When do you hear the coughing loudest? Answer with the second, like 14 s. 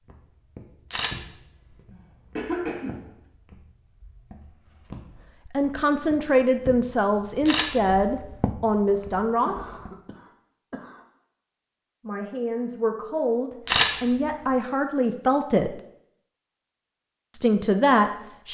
3 s.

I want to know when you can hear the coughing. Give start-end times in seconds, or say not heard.
1.9-3.0, 9.4-11.0.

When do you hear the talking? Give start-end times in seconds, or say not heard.
5.5-9.8, 12.1-15.8, 17.3-18.4.